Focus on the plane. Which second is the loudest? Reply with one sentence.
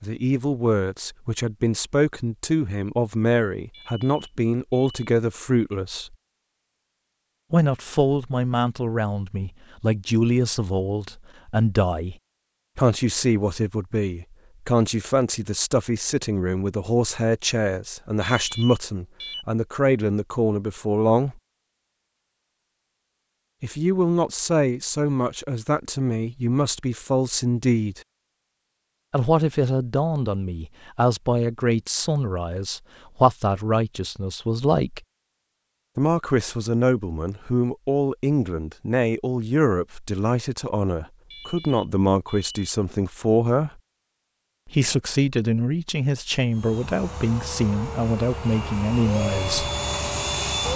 The loudest moment of the plane is at 50 seconds.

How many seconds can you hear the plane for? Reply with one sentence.
You can hear the plane for 4 seconds altogether.